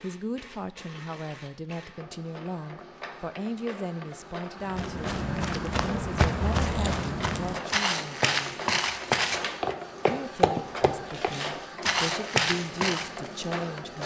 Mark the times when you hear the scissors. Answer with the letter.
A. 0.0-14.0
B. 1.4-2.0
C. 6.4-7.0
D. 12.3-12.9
C.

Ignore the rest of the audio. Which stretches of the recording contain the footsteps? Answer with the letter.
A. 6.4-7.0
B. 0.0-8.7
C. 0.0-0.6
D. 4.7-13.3
D.